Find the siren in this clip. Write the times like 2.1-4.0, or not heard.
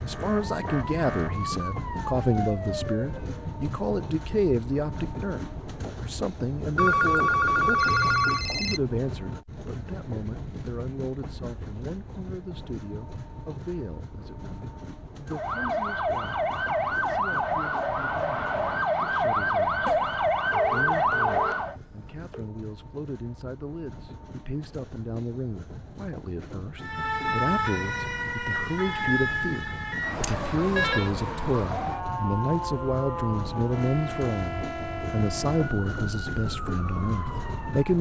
0.0-3.5, 15.2-21.8, 26.8-37.9.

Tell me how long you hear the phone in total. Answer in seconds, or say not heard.
6 s.